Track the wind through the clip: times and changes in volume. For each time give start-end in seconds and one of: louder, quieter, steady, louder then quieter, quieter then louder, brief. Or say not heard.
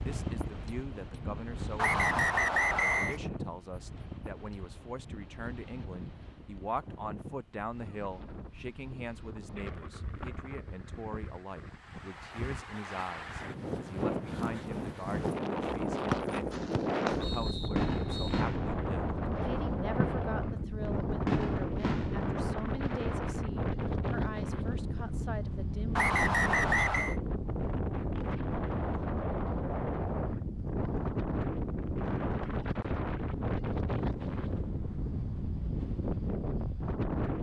0.0-37.3 louder.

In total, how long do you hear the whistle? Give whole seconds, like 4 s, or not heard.
5 s.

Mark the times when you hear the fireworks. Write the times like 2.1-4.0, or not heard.
16.5-23.1.